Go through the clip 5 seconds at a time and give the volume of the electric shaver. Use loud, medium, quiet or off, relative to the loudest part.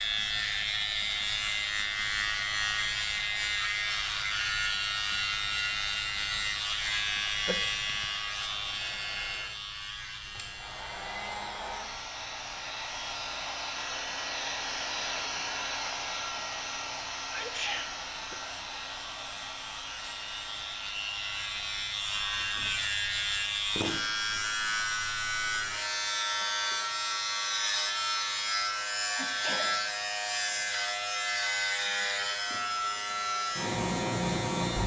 loud, loud, quiet, quiet, loud, loud, loud.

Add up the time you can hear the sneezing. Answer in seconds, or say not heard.
2 s.